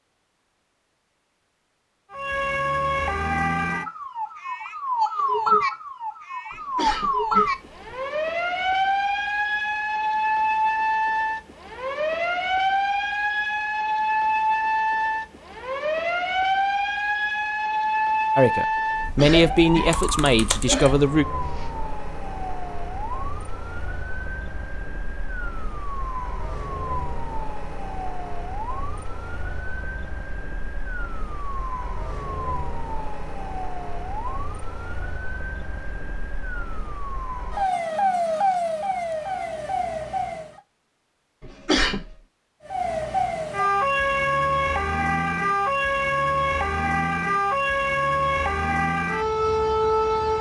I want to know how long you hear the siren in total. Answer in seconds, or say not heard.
46 s.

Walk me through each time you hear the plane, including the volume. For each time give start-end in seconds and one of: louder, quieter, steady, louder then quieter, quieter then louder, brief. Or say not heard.
not heard.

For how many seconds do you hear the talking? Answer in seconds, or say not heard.
3 s.